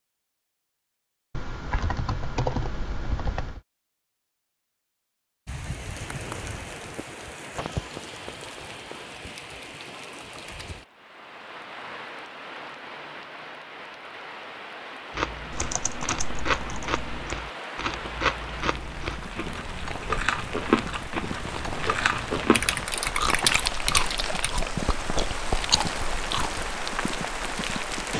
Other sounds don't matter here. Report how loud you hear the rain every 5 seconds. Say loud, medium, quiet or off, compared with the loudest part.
off, medium, medium, medium, loud, loud.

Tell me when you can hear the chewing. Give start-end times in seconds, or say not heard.
15.1-26.6.